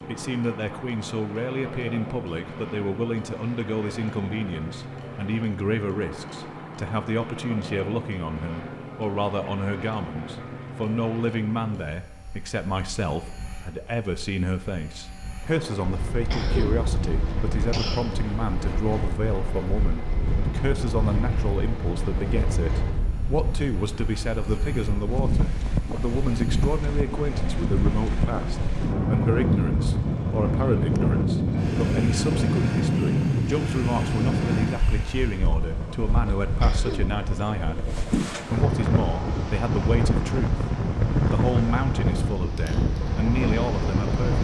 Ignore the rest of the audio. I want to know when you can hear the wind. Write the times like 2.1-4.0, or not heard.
15.8-44.3.